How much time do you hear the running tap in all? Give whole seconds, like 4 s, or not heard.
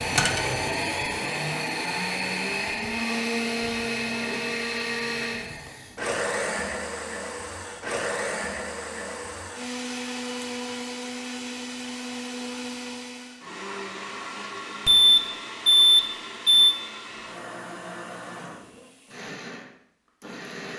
not heard.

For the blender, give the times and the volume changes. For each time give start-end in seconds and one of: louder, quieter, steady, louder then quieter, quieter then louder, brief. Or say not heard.
0.0-20.7 quieter.